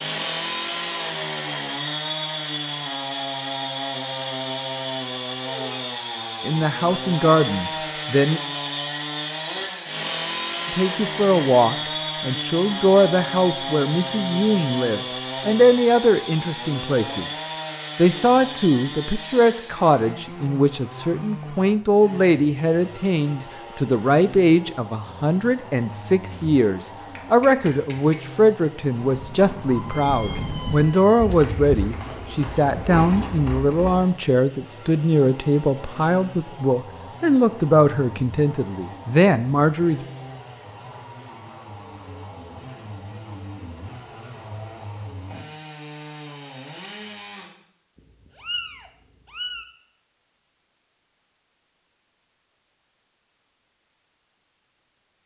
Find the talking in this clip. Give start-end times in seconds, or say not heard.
6.4-8.4, 10.7-17.2, 17.9-40.0.